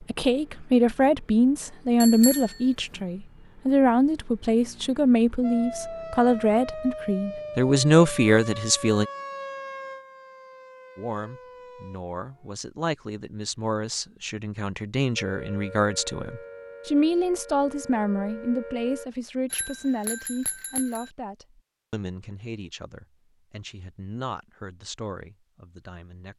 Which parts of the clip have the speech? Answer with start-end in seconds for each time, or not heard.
0.0-9.1, 10.9-26.3.